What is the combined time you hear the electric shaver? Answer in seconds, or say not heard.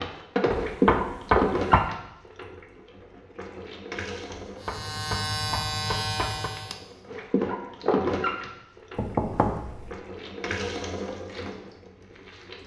2 s.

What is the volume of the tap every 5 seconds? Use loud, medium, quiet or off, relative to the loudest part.
loud, loud, medium.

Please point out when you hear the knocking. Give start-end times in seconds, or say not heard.
0.5-1.9, 4.3-6.5, 8.9-9.9.